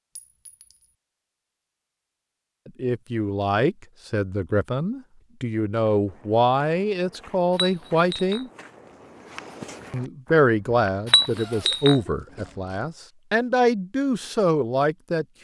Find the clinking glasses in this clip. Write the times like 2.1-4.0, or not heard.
0.1-0.8, 7.5-8.4, 11.1-11.9.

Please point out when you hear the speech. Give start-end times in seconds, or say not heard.
2.6-8.5, 9.9-15.2.